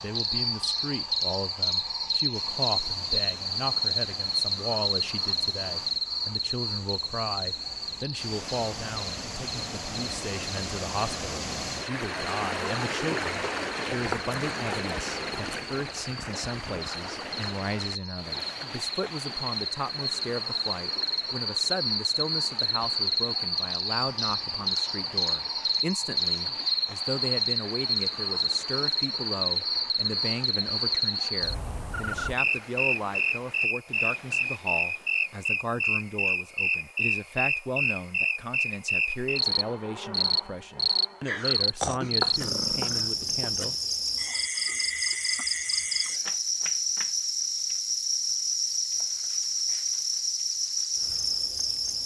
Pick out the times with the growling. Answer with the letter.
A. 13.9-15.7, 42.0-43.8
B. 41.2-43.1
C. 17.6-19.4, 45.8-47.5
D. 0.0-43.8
B.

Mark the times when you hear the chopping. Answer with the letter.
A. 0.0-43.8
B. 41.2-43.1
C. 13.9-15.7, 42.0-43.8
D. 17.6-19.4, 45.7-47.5
C.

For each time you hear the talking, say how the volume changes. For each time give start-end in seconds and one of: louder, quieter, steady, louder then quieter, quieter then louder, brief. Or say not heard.
0.0-43.8 steady.